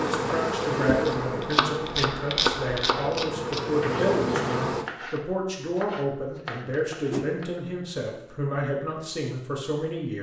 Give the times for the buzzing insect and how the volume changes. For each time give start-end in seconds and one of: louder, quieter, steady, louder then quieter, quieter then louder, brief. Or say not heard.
0.0-4.8 quieter then louder.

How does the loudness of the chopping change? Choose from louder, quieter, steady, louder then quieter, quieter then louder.
quieter.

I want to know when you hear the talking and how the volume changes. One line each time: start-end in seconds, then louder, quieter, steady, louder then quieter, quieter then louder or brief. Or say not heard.
0.0-10.1 steady.